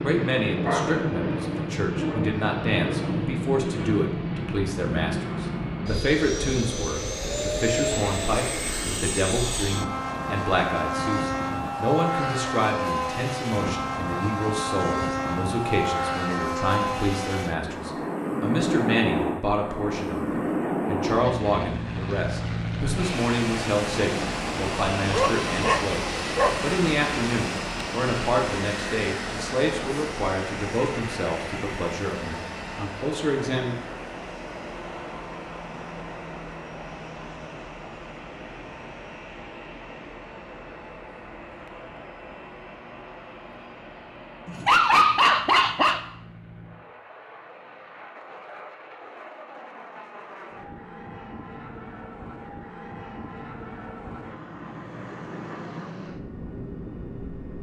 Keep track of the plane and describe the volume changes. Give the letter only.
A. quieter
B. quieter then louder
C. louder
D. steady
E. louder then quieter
A.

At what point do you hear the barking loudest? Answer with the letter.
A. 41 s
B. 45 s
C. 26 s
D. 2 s
B.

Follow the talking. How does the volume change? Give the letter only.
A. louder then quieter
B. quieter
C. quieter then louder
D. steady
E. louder
D.